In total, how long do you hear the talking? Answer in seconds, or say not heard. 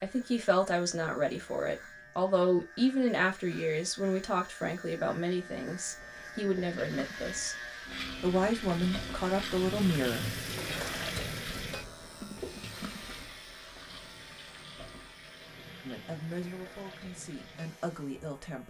13 s.